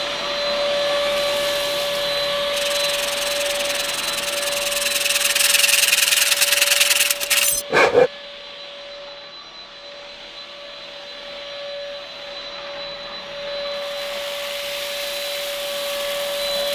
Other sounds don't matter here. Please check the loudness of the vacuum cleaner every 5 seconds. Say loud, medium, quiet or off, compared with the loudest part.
loud, medium, medium, loud.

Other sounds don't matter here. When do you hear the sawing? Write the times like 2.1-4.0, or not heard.
2.5-8.1.